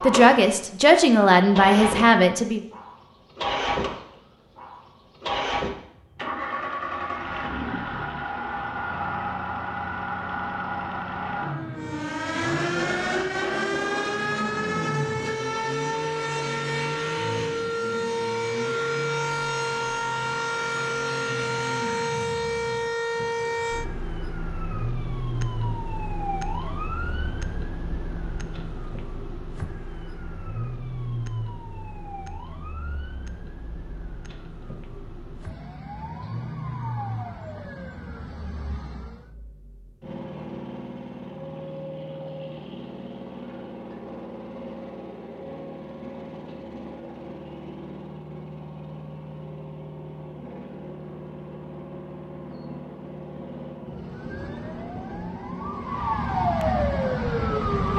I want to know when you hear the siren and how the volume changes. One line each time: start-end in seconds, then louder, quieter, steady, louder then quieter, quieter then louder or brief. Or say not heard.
11.8-39.4 quieter
53.9-57.9 louder.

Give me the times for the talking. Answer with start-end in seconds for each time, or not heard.
0.0-2.6.